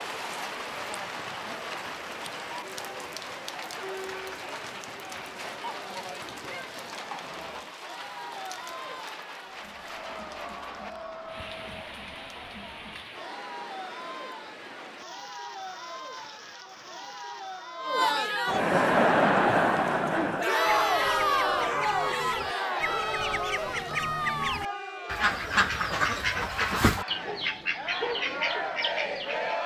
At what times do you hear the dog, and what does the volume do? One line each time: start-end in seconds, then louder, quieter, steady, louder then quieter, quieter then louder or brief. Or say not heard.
not heard.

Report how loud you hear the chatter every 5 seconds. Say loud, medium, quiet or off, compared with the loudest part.
quiet, quiet, quiet, loud, loud, medium.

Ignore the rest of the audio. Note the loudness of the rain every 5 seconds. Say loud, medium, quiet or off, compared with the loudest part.
loud, loud, medium, medium, off, off.